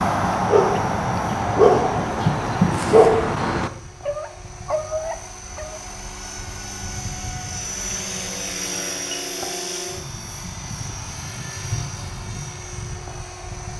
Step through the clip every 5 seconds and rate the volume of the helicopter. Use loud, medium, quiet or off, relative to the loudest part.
medium, loud, loud.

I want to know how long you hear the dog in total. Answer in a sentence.
The dog can be heard for 6 seconds in total.